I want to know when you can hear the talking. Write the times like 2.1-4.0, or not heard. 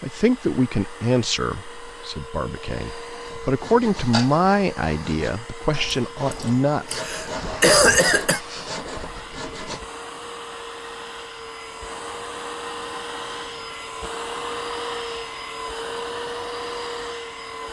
0.0-6.8.